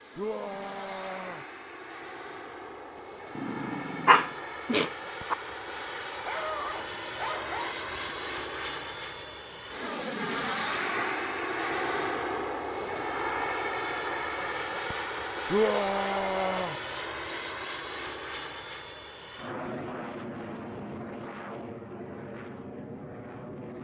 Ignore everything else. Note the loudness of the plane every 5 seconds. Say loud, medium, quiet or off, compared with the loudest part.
medium, medium, loud, medium, medium.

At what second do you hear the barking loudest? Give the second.
4 s.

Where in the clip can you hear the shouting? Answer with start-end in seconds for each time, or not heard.
0.1-1.4, 15.5-16.8.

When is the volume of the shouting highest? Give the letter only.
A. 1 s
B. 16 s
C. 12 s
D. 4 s
B.